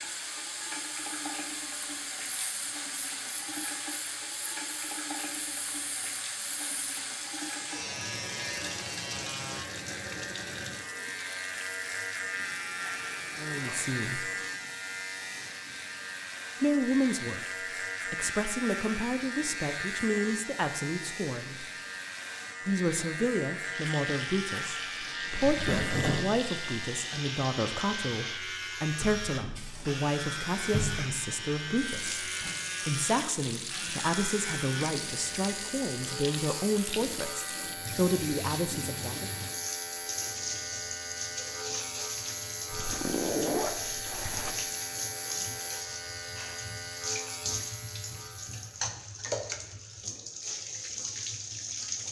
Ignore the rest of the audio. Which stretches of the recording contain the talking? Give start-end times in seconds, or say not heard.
13.3-14.2, 16.6-17.4, 18.1-21.6, 22.6-39.3.